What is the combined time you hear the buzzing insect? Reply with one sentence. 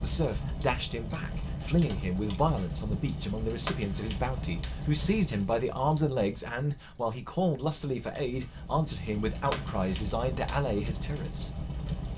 You can't hear the buzzing insect here.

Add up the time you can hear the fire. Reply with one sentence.
You can hear the fire for 12 seconds altogether.